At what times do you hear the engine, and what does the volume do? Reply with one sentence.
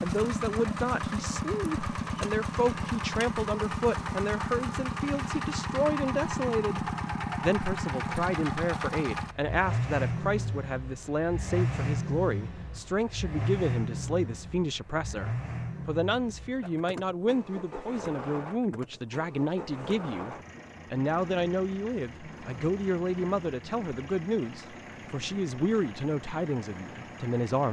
You can hear the engine from 0.0 to 27.6 s, getting quieter.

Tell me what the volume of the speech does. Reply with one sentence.
The loudness of the speech stays about the same.